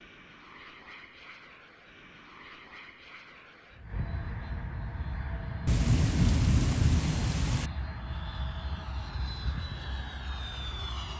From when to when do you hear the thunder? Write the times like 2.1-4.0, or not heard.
5.7-7.7.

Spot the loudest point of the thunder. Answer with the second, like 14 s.
6 s.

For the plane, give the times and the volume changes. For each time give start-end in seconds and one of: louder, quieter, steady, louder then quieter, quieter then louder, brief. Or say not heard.
0.0-11.1 louder.